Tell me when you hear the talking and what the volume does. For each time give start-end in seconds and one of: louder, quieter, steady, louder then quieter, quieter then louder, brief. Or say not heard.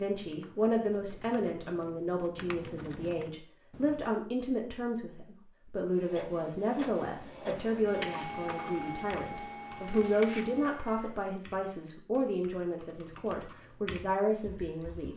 0.0-15.1 steady.